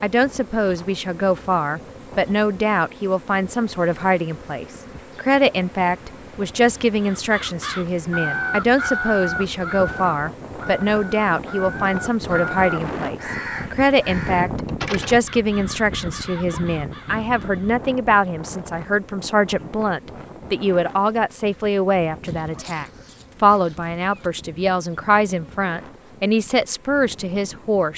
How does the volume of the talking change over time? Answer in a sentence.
The volume of the talking stays about the same.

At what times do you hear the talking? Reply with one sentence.
The talking can be heard from 0.0 to 27.9 s.